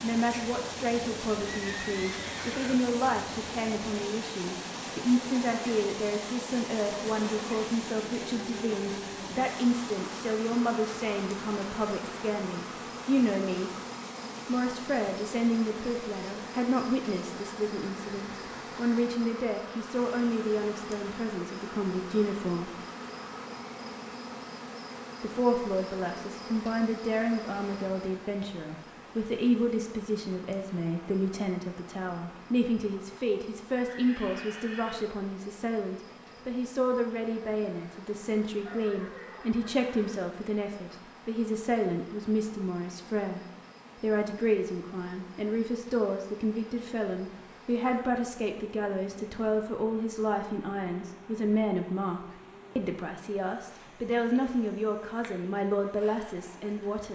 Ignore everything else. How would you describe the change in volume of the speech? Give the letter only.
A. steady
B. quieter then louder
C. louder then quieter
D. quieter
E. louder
A.